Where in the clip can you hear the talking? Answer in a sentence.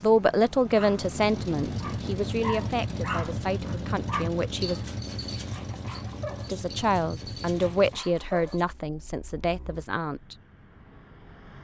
You can hear the talking from 0.0 to 4.8 s and from 6.5 to 10.3 s.